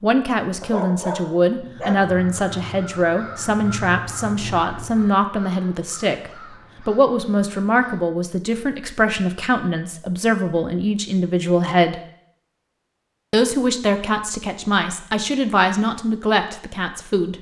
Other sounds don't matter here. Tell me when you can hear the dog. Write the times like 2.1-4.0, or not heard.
0.6-2.1.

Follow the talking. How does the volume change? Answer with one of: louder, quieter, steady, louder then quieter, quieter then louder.
steady.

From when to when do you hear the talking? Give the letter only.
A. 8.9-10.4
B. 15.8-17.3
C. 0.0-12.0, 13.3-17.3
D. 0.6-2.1
C.